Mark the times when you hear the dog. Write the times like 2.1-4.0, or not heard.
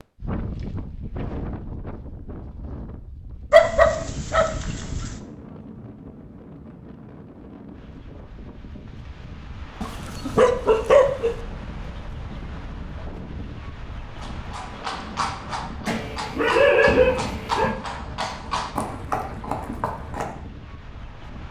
3.5-5.2, 9.8-11.3, 15.8-17.8.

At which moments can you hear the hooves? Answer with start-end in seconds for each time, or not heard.
14.2-20.3.